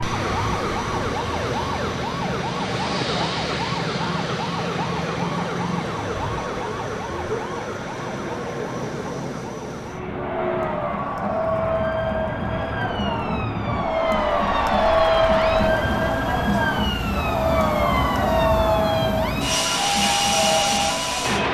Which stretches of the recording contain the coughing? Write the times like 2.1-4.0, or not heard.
not heard.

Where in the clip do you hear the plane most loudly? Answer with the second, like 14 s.
20 s.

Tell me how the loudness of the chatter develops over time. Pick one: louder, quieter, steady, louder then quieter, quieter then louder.
louder.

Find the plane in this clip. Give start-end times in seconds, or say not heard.
0.0-21.4.